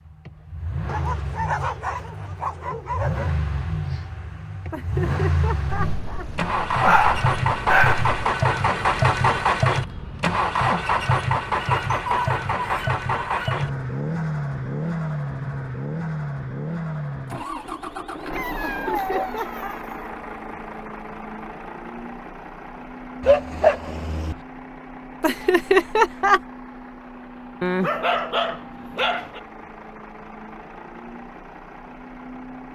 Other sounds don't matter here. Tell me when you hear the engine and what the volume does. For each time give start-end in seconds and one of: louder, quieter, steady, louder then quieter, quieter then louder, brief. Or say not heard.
0.0-32.7 louder then quieter.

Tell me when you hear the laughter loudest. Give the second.
26 s.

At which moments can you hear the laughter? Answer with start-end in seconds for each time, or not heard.
4.7-6.5, 18.6-19.8, 25.2-26.4.